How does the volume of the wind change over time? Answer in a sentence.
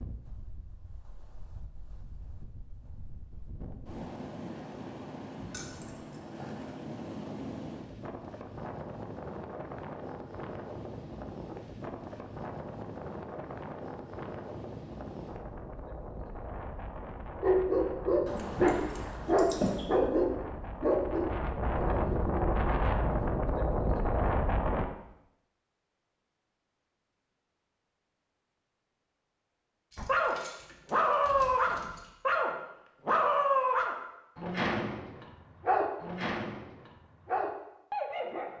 The volume of the wind goes up.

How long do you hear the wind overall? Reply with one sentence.
You can hear the wind for 25 seconds altogether.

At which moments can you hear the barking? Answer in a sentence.
You can hear the barking from 17.4 to 22.3 s and from 29.9 to 38.5 s.